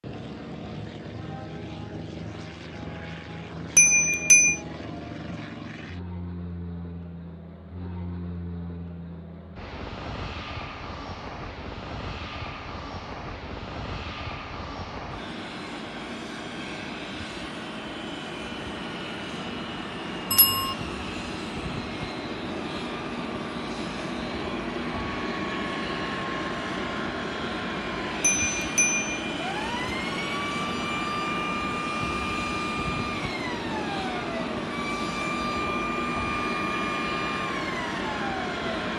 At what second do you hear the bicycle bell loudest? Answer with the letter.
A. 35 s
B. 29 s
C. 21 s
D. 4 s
D.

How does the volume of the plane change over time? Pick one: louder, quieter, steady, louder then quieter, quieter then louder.
louder.